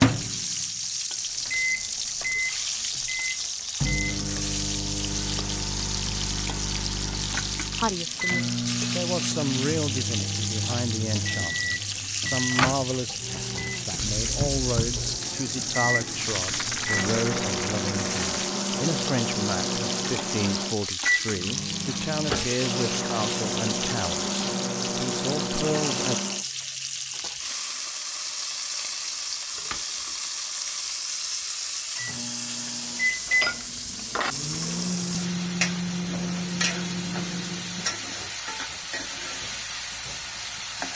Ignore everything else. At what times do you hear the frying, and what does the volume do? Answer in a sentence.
The frying can be heard from 0.0 to 40.9 s, at a steady volume.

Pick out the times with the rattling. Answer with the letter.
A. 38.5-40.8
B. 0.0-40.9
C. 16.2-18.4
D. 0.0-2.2
C.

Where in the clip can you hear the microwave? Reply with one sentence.
The microwave can be heard from 0.0 to 26.4 s and from 31.9 to 38.0 s.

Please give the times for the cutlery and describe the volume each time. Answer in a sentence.
The cutlery can't be heard in this clip.